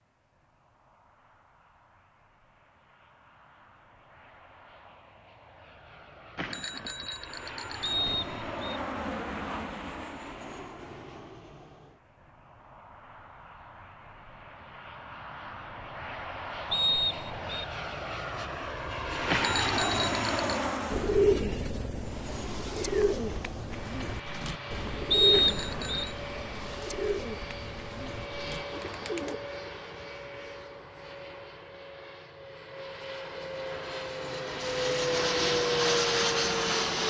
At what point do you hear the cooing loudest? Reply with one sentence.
The volume of the cooing peaks at 21 seconds.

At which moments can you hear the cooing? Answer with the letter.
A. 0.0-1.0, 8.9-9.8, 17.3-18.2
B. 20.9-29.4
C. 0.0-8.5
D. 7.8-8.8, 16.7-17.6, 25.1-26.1
B.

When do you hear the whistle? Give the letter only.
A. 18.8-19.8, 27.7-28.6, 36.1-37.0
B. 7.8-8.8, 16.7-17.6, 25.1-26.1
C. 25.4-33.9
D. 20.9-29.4
B.